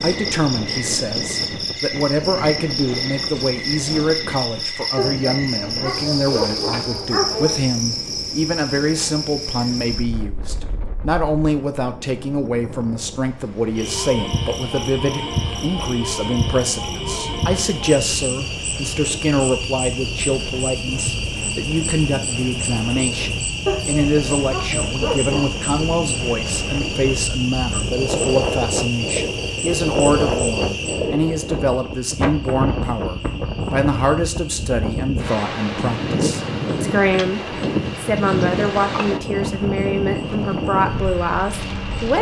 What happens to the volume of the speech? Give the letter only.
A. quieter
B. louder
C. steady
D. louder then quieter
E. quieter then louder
C.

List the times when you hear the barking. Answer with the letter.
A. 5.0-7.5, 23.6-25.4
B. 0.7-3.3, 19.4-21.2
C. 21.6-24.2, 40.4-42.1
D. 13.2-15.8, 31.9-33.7
A.